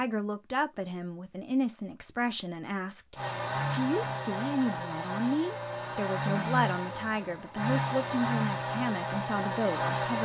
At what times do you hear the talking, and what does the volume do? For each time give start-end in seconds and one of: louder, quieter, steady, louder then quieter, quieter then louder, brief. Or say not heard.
0.0-10.1 steady.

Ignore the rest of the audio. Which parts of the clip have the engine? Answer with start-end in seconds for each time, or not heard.
3.1-10.1.